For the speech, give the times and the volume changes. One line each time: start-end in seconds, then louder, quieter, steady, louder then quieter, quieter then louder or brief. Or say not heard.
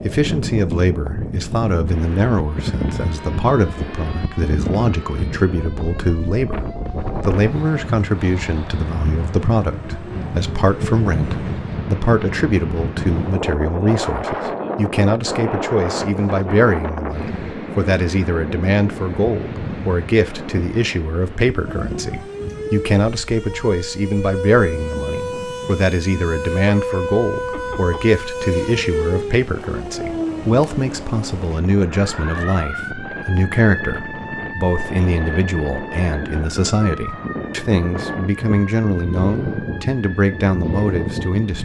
0.0-41.5 steady.